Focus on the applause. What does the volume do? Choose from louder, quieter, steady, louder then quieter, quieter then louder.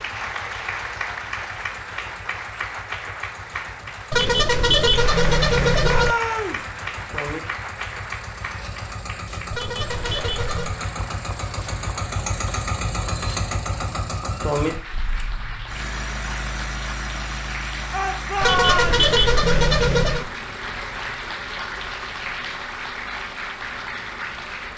quieter then louder.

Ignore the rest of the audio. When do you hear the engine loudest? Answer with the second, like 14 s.
14 s.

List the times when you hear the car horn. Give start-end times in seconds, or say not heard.
4.1-6.2, 9.5-10.8, 18.4-20.3.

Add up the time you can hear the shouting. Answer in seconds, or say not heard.
2 s.